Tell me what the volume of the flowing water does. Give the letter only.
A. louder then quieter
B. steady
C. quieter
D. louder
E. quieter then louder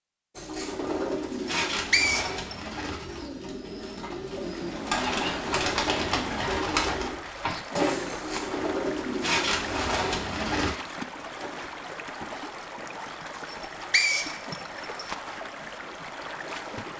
B.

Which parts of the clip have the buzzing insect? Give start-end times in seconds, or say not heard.
not heard.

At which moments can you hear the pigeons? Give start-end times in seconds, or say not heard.
0.3-10.8.